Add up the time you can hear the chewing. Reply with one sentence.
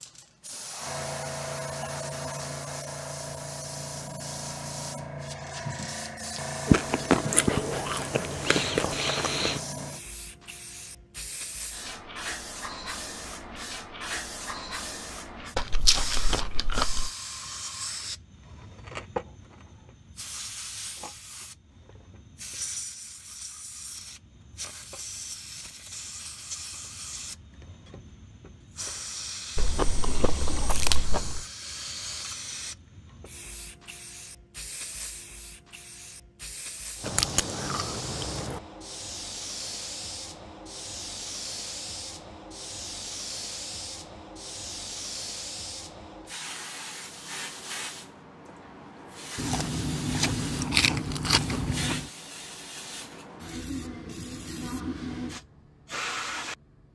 The chewing can be heard for 11 seconds in total.